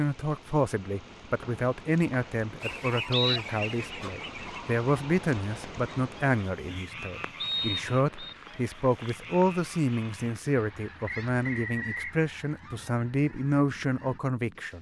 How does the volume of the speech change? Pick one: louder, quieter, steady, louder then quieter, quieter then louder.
steady.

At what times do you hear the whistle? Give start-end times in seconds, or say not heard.
1.4-3.4, 7.4-8.3, 11.1-12.2.